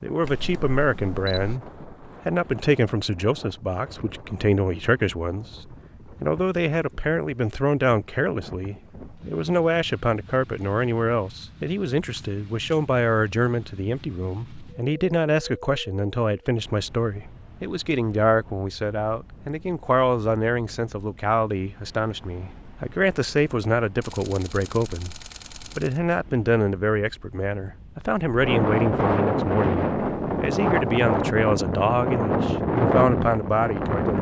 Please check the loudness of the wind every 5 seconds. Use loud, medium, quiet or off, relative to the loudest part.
quiet, quiet, quiet, quiet, quiet, loud, loud.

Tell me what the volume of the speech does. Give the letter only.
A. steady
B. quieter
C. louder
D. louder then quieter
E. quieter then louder
A.